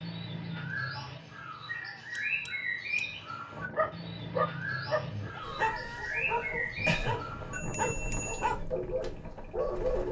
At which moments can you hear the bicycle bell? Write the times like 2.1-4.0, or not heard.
2.1-3.2, 7.5-8.5.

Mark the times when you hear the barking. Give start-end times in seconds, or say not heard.
3.7-10.0.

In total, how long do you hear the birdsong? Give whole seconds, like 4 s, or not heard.
10 s.